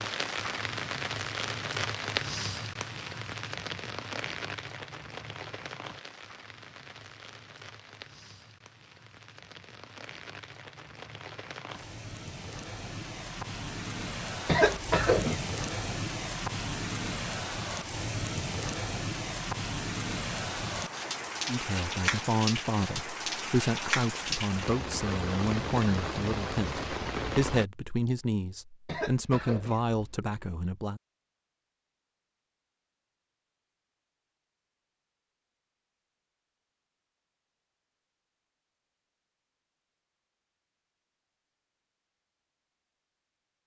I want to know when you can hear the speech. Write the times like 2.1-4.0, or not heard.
21.4-31.0.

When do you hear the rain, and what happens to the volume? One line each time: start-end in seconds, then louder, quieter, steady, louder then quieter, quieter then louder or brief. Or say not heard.
0.0-27.6 quieter then louder.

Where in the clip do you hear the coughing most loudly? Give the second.
15 s.